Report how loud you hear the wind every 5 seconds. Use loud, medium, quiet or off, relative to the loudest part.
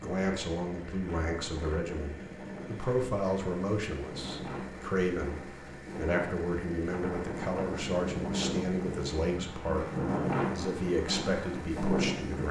medium, medium, loud.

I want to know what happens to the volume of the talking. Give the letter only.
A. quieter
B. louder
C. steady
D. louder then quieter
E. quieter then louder
C.